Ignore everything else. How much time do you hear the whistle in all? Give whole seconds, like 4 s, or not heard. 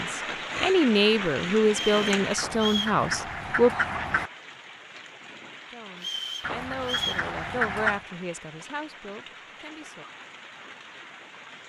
3 s.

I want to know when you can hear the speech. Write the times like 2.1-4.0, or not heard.
0.0-3.7, 5.7-10.1.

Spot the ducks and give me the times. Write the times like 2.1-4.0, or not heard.
2.4-4.3, 6.4-8.0.